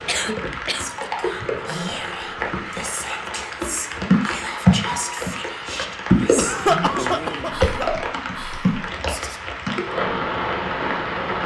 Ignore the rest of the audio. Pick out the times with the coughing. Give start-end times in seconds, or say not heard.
0.1-1.5, 6.3-7.8.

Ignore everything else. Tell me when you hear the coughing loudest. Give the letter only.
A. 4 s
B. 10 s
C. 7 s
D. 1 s
C.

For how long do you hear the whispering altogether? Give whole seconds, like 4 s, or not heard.
9 s.